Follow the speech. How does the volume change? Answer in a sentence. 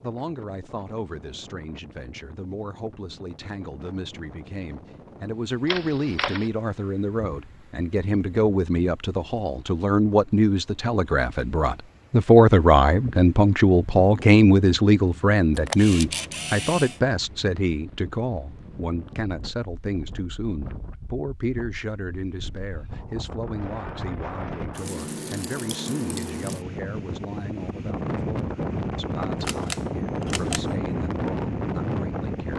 The volume of the speech goes up, then down.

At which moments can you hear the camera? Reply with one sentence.
You can hear the camera from 5.7 to 6.5 s, from 15.5 to 17.0 s and from 29.4 to 30.6 s.